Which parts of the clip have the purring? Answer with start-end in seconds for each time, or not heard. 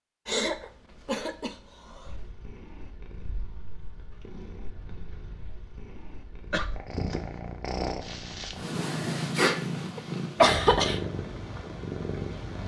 2.0-12.6.